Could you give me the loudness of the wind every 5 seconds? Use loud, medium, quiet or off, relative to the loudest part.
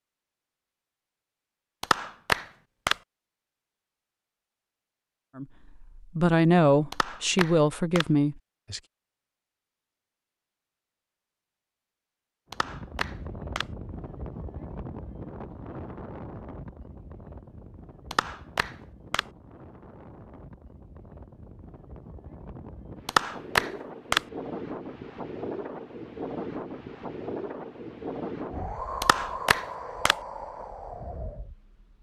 off, off, medium, medium, medium, loud, medium.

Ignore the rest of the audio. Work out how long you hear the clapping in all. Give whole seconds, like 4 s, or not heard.
7 s.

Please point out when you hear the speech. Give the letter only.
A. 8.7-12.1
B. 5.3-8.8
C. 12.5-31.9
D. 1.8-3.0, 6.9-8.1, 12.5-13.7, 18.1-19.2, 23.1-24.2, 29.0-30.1
B.